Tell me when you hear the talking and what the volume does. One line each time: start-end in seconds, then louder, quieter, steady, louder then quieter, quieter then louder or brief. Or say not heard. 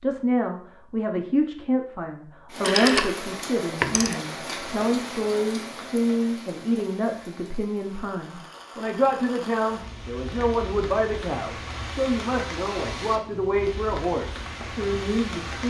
0.0-15.6 steady.